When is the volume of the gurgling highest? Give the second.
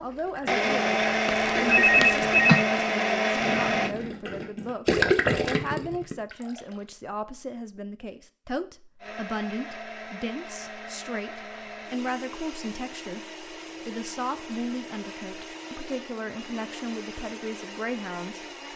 5 s.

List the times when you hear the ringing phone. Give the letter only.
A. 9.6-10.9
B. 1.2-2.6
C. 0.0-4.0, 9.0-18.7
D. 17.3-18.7
B.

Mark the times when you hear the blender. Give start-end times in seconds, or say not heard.
0.0-4.0, 9.0-18.7.